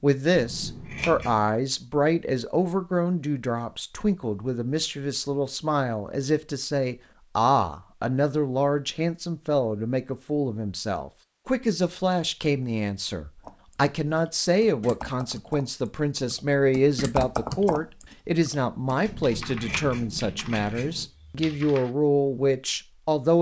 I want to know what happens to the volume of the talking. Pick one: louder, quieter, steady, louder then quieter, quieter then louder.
steady.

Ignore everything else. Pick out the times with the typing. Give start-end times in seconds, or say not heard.
13.4-21.9.